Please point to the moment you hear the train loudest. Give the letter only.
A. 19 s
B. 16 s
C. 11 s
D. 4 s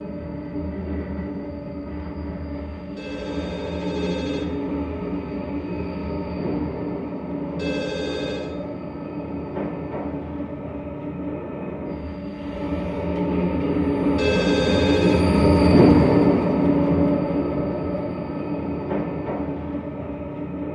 B.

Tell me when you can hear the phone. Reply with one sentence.
You can hear the phone from 3.0 to 4.5 s, from 7.5 to 8.5 s and from 14.2 to 15.2 s.